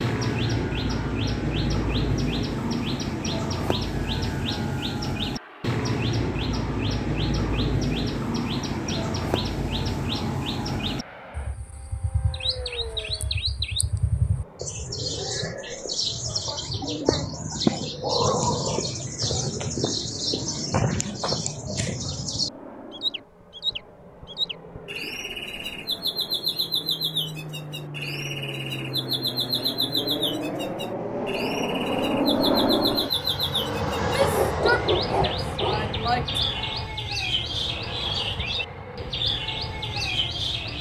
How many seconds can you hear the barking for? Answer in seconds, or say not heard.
2 s.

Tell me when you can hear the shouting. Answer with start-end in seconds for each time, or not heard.
34.0-36.5.